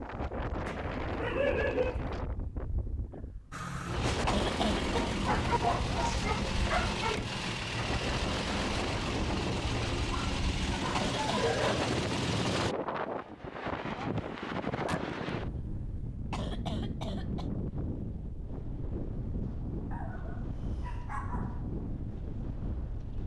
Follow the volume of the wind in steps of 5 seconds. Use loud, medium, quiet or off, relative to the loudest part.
loud, loud, loud, loud, medium.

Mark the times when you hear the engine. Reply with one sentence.
You can hear the engine from 3.5 to 12.8 s.